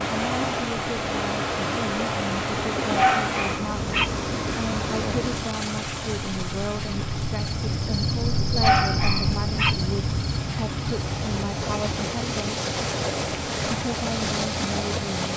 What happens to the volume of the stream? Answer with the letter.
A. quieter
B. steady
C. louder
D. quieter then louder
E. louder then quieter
D.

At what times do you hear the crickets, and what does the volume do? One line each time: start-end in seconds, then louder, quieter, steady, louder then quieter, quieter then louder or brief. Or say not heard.
0.0-15.3 louder then quieter.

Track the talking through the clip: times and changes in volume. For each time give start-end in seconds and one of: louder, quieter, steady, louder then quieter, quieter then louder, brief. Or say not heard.
0.1-12.6 steady
13.7-15.3 brief.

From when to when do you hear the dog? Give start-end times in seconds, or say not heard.
3.0-4.0, 8.6-9.7.